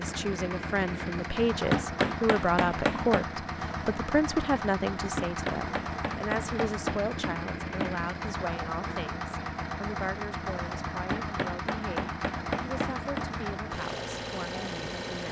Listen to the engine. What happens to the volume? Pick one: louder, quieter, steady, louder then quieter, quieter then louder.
steady.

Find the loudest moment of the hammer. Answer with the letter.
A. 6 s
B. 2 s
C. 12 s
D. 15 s
B.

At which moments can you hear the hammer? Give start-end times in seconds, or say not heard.
1.7-3.2, 5.2-8.0, 11.1-13.3.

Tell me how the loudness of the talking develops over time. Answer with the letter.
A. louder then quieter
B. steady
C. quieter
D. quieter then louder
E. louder
C.